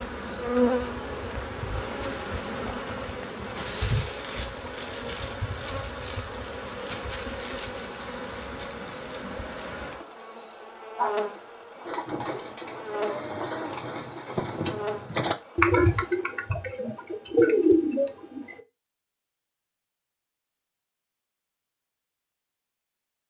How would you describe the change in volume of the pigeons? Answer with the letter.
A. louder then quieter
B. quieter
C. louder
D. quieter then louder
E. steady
C.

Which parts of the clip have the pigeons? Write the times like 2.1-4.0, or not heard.
10.9-18.6.